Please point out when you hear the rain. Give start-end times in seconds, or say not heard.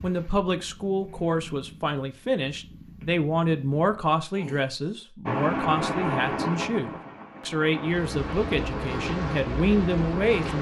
5.2-10.5.